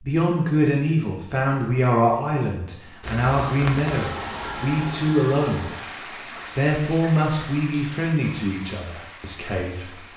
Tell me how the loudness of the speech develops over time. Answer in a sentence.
The loudness of the speech goes down.